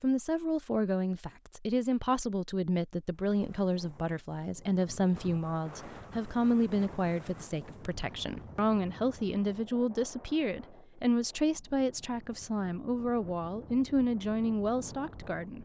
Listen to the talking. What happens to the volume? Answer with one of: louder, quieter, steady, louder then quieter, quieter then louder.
steady.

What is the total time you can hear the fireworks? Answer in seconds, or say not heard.
not heard.